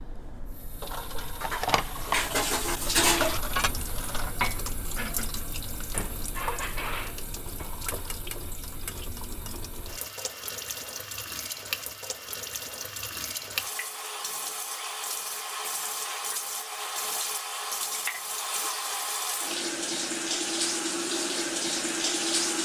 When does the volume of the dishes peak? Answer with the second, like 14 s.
3 s.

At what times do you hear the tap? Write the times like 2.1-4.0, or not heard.
0.0-22.6.